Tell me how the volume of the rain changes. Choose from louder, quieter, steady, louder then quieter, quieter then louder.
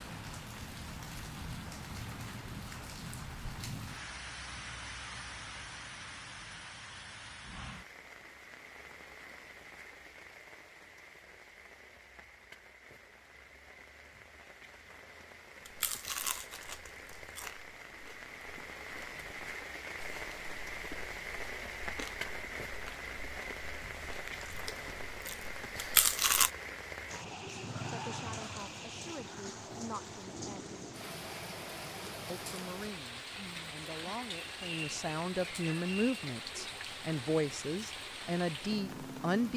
quieter then louder.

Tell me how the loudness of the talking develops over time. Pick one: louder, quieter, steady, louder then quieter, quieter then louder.
louder.